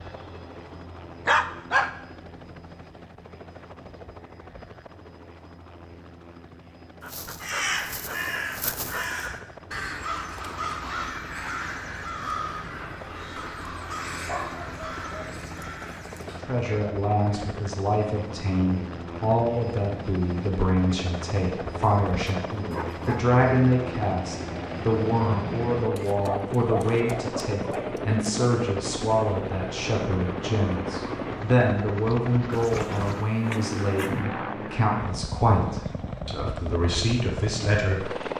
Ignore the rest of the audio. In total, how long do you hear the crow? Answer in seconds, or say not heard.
9 s.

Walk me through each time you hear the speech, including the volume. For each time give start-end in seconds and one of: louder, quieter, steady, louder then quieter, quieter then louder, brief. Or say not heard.
16.4-38.1 steady.